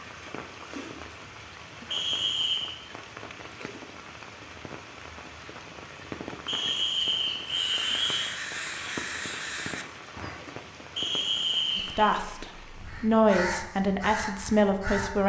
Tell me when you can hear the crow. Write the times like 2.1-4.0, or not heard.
7.5-10.4, 12.7-15.2.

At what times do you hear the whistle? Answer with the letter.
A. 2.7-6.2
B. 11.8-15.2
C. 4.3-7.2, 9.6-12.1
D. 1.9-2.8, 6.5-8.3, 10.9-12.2
D.